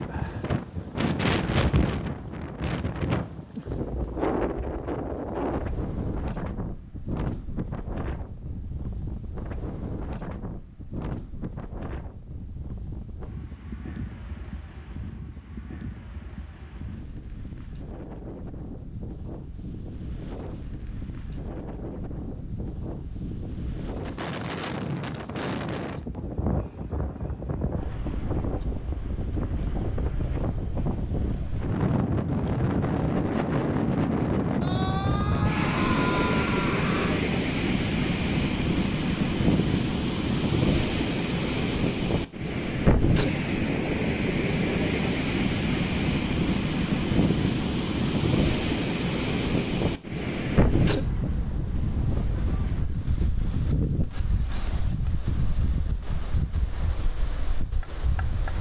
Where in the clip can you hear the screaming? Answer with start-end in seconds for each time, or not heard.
34.6-37.2.